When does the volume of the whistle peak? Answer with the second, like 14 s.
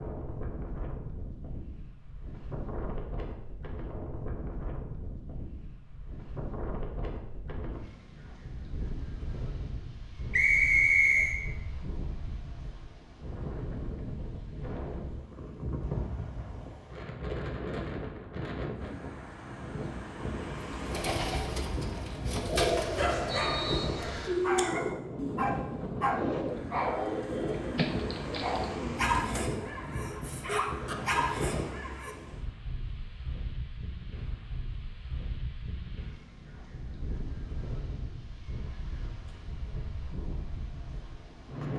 11 s.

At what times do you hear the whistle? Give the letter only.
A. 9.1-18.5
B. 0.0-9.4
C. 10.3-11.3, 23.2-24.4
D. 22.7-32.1
C.